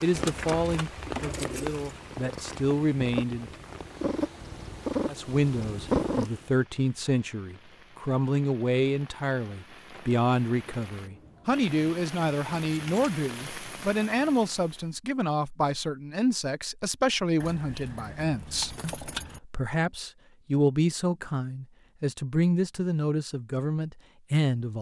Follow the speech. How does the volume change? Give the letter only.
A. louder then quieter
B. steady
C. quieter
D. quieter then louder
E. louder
B.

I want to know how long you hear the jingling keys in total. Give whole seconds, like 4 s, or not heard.
4 s.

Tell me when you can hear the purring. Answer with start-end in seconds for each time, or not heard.
0.1-6.4.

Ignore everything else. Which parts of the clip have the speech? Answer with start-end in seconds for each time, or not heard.
0.0-3.5, 5.0-24.7.